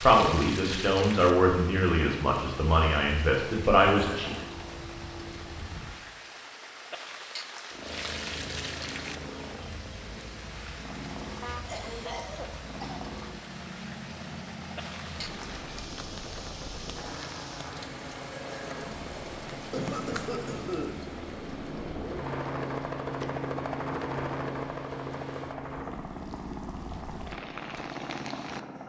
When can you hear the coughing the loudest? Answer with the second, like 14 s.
20 s.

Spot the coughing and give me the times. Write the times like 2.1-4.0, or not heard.
4.0-4.5, 11.5-13.0, 19.7-20.9.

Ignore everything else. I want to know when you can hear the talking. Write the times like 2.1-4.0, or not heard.
0.0-4.3.